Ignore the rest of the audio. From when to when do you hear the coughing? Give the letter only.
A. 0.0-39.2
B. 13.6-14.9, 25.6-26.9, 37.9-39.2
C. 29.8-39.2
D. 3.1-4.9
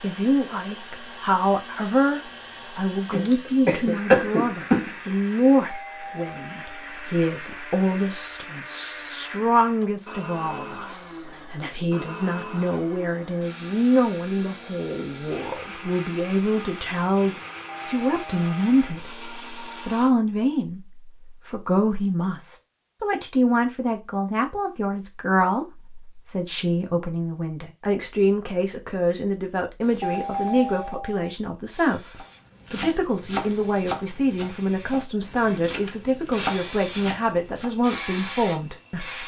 D.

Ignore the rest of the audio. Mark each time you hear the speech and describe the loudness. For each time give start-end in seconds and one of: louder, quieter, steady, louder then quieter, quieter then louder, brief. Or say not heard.
0.0-39.2 steady.